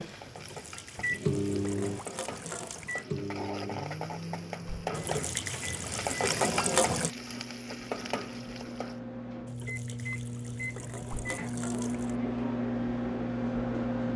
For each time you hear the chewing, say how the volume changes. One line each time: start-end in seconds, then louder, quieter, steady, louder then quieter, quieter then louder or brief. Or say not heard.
not heard.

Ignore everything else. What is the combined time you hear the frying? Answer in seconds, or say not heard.
9 s.